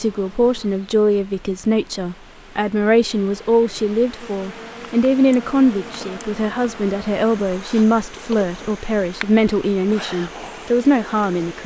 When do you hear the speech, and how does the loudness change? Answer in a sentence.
You can hear the speech from 0.0 to 11.6 s, at a steady volume.